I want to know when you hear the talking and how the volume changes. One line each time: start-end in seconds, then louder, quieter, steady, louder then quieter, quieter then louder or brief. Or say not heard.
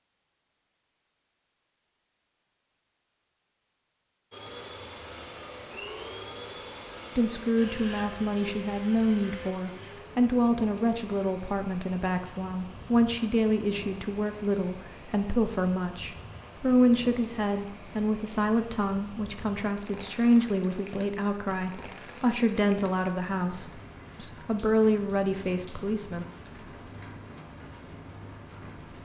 7.2-26.2 steady.